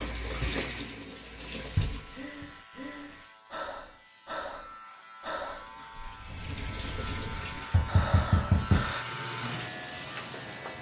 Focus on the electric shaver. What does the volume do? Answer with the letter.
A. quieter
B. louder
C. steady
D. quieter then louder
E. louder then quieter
B.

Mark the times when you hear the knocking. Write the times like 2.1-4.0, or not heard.
1.8-2.5, 7.7-8.9.